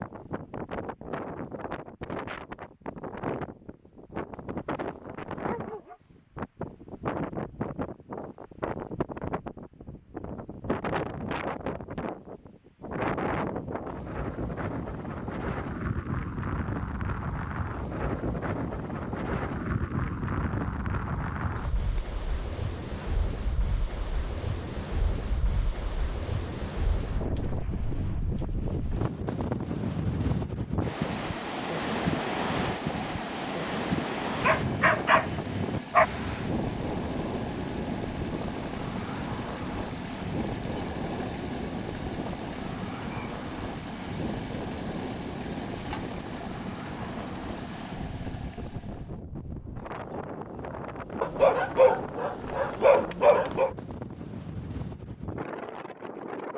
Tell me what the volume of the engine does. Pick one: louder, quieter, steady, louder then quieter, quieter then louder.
steady.